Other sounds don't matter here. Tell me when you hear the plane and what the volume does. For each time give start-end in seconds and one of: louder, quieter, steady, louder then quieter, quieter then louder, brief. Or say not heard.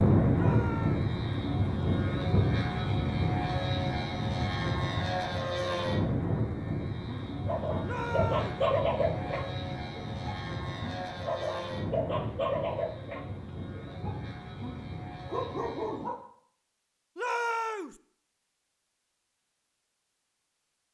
0.0-16.1 quieter.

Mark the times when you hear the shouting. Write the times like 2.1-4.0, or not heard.
0.3-1.1, 7.8-8.7, 17.1-17.9.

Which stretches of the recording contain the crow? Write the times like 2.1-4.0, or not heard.
not heard.